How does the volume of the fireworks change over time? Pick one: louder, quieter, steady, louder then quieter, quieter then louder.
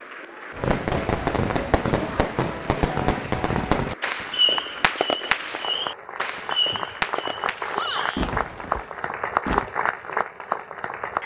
quieter.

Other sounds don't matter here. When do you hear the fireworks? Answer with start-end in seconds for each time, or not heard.
0.6-9.7.